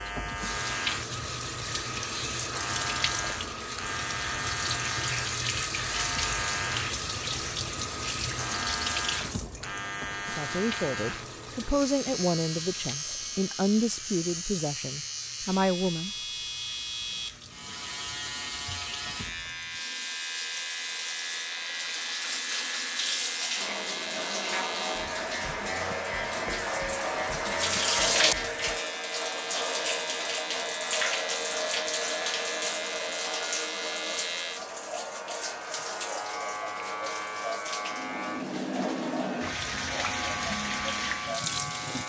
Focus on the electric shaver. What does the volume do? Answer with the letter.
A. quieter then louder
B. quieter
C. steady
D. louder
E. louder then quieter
C.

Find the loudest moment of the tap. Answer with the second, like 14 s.
28 s.